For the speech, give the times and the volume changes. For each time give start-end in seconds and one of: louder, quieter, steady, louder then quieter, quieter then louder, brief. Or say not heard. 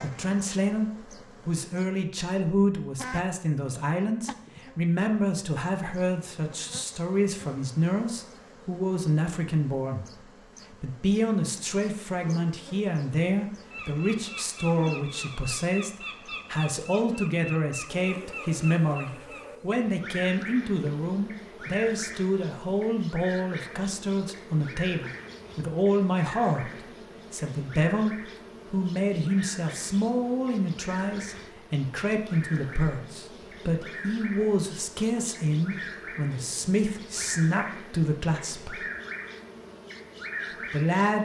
0.0-10.1 steady
10.7-38.8 steady
40.7-41.2 brief.